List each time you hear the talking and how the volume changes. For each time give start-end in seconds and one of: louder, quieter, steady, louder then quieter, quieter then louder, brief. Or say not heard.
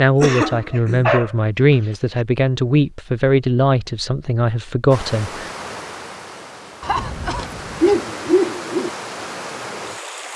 0.0-5.5 steady.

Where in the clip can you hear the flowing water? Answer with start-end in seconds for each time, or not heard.
4.9-10.3.